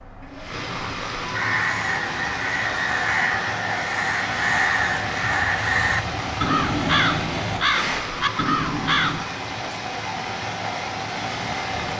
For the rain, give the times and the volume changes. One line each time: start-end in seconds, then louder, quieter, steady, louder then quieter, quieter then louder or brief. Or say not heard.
0.0-11.9 steady.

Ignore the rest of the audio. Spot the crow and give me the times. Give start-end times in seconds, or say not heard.
1.3-9.2.